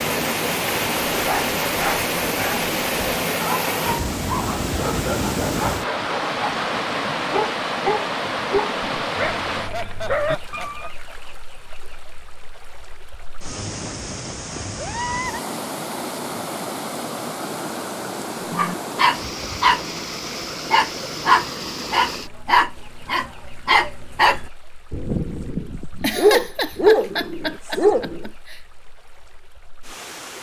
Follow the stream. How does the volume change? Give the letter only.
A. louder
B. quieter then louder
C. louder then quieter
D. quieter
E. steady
D.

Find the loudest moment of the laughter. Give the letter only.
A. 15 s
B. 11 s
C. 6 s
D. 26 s
D.